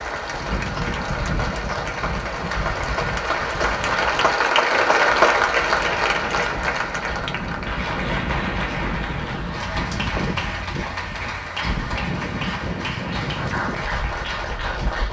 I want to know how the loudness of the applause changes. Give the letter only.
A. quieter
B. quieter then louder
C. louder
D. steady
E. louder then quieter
E.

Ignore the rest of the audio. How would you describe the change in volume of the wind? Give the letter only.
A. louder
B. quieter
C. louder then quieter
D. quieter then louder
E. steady
D.